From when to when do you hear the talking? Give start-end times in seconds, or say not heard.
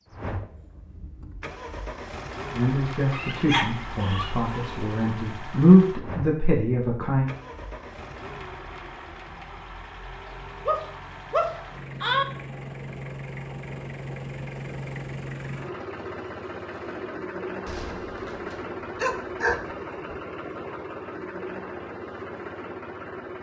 2.5-7.3.